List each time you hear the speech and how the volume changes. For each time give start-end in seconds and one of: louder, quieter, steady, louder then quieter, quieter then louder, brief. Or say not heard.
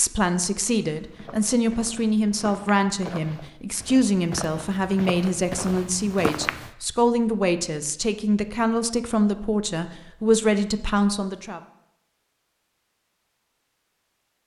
0.0-11.6 steady.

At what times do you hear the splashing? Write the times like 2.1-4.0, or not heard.
not heard.